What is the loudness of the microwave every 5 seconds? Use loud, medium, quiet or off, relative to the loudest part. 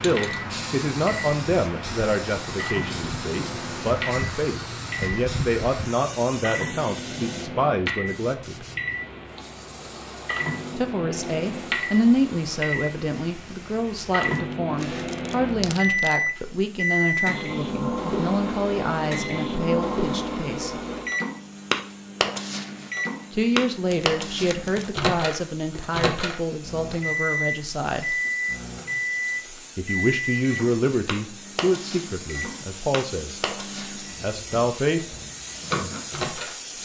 medium, medium, medium, loud, loud, loud, medium, medium.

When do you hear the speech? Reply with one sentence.
You can hear the speech from 0.0 to 8.7 s, from 10.8 to 20.8 s, from 23.3 to 28.2 s, from 29.8 to 33.4 s and from 34.0 to 35.1 s.